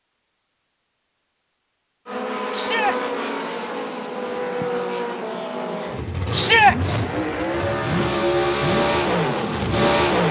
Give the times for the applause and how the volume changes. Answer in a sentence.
You can't hear the applause here.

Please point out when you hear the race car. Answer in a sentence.
You can hear the race car from 2.0 to 10.2 s.